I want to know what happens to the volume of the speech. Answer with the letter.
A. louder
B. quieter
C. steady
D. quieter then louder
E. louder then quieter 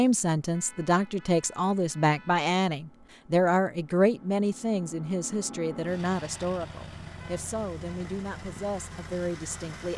B.